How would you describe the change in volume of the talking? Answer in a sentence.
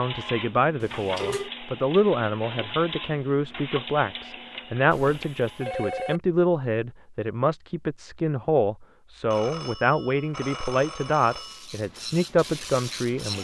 The loudness of the talking stays about the same.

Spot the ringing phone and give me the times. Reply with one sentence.
You can hear the ringing phone from 0.8 to 1.5 s, from 4.9 to 6.2 s and from 9.3 to 11.7 s.